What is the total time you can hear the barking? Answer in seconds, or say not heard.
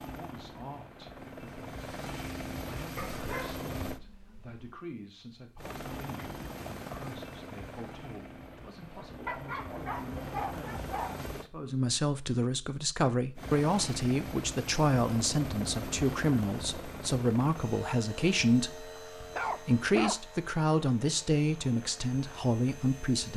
5 s.